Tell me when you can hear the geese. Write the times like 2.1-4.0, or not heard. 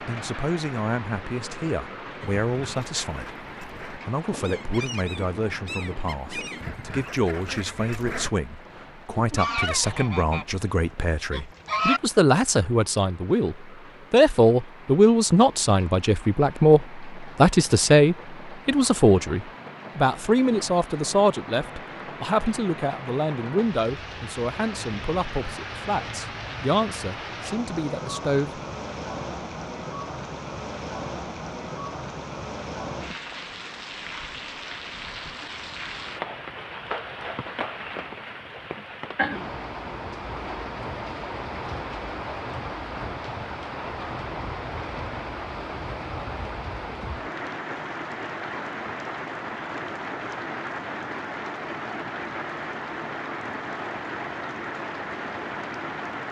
2.2-8.3, 9.2-12.0.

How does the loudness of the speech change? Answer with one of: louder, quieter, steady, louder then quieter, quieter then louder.
louder then quieter.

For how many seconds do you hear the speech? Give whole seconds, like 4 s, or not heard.
28 s.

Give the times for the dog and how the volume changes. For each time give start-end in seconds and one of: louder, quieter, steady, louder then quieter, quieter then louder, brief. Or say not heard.
not heard.